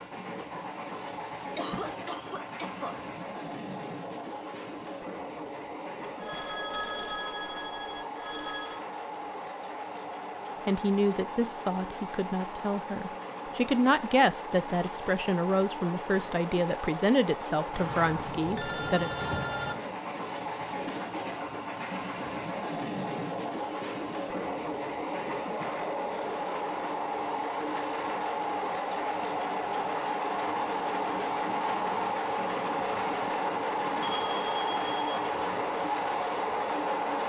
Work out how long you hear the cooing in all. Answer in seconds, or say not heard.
not heard.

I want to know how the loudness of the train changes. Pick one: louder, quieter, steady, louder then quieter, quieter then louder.
louder.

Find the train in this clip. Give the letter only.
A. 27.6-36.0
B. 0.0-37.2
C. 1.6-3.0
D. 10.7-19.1
B.